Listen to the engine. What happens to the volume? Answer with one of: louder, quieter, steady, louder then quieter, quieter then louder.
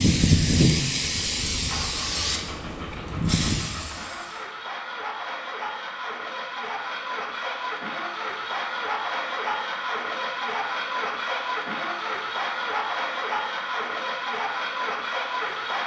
louder.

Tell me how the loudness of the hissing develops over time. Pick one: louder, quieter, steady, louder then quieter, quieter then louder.
quieter then louder.